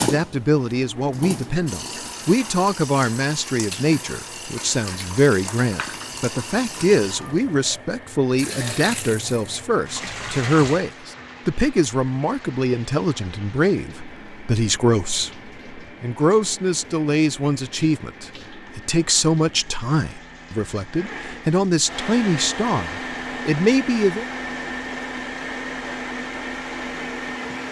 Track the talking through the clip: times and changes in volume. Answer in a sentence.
The talking can be heard from 0.0 to 24.2 s, at a steady volume.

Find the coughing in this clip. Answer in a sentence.
The coughing can't be heard in this clip.